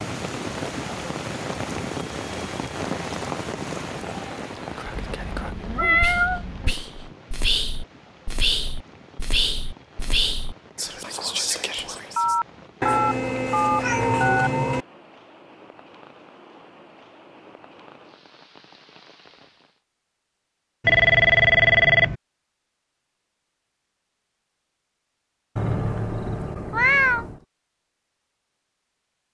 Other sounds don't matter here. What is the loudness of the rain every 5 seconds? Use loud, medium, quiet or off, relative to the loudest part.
loud, quiet, quiet, quiet, off, off.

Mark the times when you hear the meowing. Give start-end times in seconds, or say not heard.
5.0-6.8, 12.8-14.8, 25.6-27.4.